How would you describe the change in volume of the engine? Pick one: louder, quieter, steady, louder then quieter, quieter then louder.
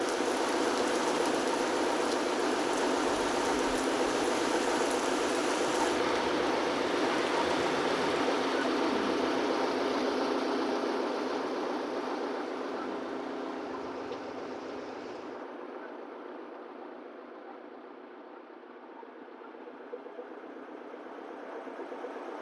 quieter.